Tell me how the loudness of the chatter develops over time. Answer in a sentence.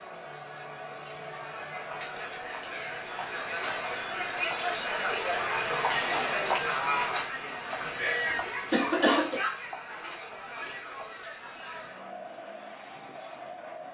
The loudness of the chatter goes up, then down.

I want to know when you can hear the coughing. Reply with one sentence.
You can hear the coughing from 7.8 to 9.4 s.